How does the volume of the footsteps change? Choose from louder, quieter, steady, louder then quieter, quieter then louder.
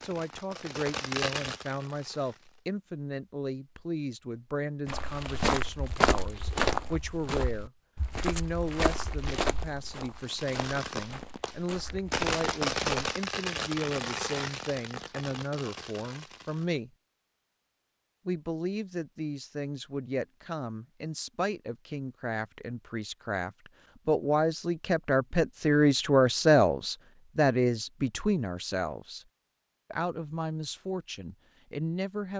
quieter.